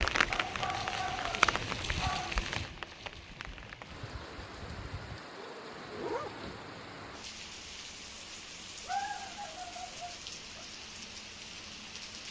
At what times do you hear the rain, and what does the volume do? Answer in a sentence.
You can hear the rain from 0.0 to 12.2 s, getting quieter.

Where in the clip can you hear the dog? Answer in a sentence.
You can hear the dog from 0.3 to 2.4 s, from 5.3 to 6.3 s and from 8.8 to 10.7 s.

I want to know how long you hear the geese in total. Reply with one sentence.
The geese can't be heard in this clip.